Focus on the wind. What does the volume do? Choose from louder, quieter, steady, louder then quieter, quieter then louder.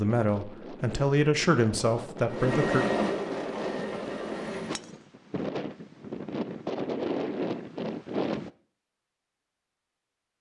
louder.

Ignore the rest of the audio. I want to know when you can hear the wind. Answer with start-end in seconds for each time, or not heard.
0.0-8.5.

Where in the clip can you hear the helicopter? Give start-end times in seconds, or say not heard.
2.2-4.8.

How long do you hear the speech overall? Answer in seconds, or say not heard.
3 s.